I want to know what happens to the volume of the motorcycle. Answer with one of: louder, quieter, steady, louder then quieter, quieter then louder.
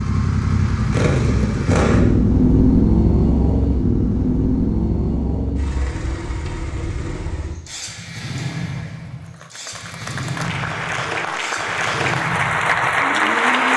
quieter.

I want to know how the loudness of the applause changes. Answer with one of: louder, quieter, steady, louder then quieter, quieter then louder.
louder.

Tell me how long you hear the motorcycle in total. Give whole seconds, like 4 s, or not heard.
14 s.